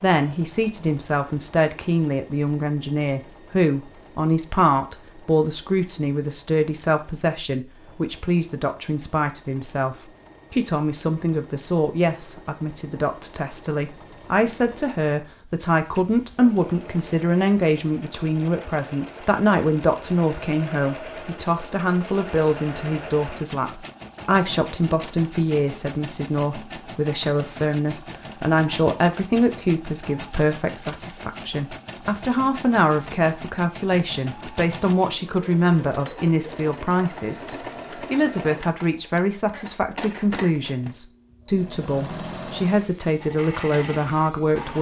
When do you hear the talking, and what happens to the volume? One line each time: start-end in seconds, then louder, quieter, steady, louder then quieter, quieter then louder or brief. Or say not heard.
0.0-44.7 steady.